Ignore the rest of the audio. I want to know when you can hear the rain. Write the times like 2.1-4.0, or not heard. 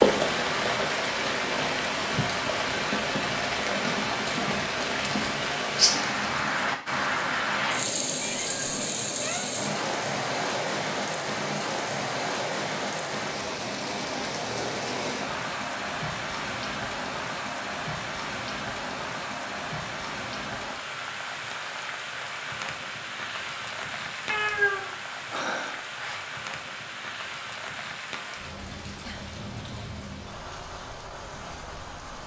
0.0-32.2.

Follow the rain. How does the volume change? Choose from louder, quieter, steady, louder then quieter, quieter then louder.
quieter.